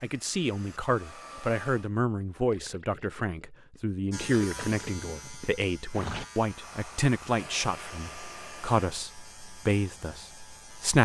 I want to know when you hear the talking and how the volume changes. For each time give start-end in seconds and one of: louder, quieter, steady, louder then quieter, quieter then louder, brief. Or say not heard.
0.0-10.9 steady.